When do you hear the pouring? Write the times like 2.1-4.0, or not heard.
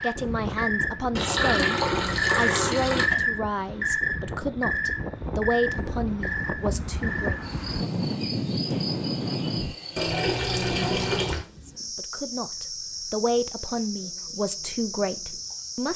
1.1-3.1, 9.9-11.4.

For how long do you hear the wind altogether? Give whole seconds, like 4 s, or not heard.
10 s.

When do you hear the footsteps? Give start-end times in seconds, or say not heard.
not heard.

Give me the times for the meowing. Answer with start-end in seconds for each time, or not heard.
not heard.